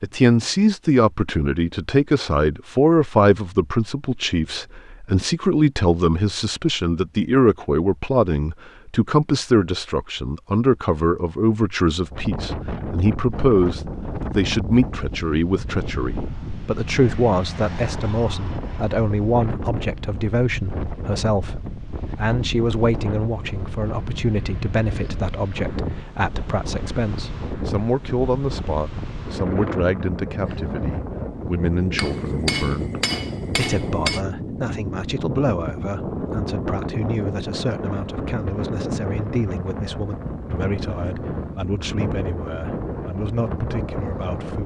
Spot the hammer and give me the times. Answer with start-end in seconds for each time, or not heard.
31.9-34.2.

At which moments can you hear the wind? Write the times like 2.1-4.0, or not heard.
12.1-44.6.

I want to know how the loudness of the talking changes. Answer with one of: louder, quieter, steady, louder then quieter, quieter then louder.
quieter.